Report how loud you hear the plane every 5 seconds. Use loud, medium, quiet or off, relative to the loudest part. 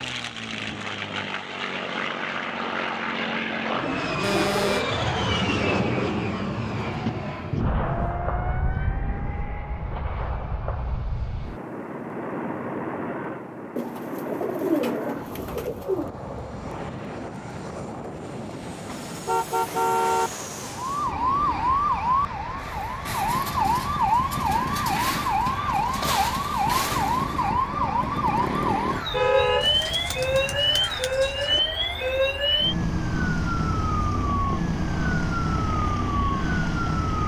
loud, loud, medium, medium, medium, medium, medium, medium.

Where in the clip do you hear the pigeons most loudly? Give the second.
15 s.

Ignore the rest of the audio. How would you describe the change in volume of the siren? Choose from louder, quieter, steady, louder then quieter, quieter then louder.
steady.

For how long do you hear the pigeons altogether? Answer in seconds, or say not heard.
4 s.